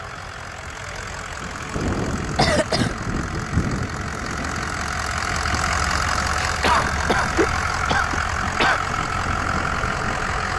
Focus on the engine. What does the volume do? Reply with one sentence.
The loudness of the engine goes up.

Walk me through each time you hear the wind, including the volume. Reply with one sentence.
You can hear the wind from 1.7 to 10.4 s, getting quieter.